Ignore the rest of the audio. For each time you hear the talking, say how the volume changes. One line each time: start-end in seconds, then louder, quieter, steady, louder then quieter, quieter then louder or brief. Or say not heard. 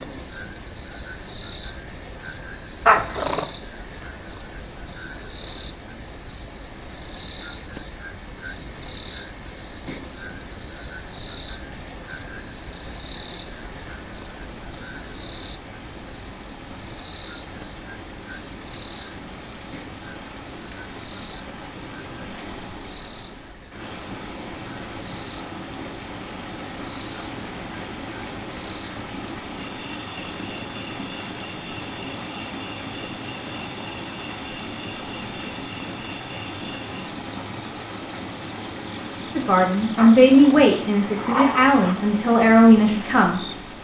39.4-43.5 quieter then louder.